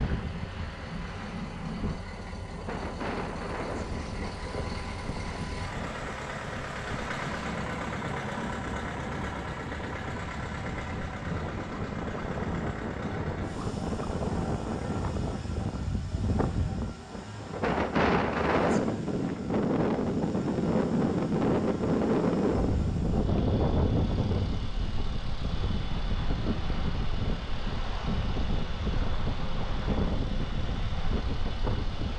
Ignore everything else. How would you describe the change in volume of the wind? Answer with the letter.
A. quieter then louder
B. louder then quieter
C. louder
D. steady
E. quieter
B.